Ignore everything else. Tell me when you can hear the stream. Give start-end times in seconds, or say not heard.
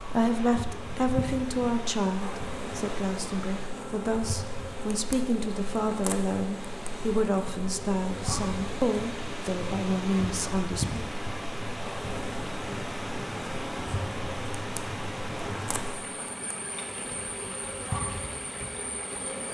0.0-19.4.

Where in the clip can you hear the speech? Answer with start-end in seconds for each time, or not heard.
0.0-11.1.